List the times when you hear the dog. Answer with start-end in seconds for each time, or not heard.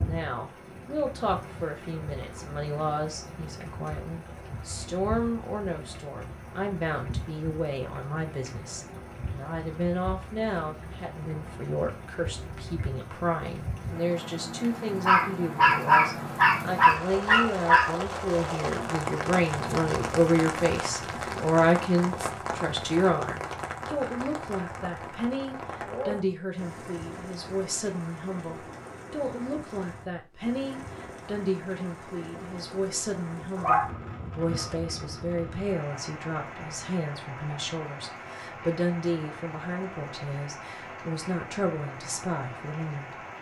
15.1-17.9, 33.5-35.0.